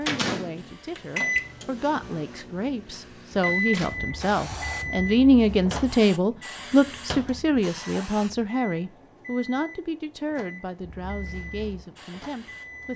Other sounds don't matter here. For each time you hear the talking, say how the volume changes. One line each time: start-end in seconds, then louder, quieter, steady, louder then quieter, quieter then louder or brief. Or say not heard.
0.0-12.9 louder then quieter.